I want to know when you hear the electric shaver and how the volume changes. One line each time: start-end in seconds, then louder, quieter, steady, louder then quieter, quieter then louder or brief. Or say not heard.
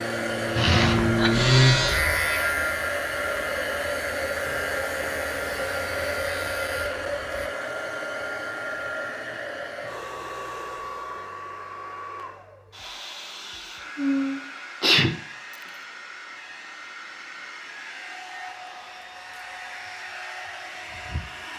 0.0-7.5 quieter.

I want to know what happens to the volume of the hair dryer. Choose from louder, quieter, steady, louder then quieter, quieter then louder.
quieter.